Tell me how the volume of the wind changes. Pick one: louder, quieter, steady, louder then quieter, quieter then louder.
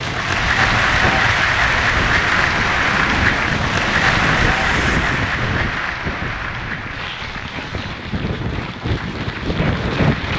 quieter then louder.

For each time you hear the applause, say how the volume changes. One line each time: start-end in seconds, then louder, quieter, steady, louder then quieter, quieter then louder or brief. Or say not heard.
0.0-10.3 quieter.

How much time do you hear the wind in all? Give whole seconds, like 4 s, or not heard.
10 s.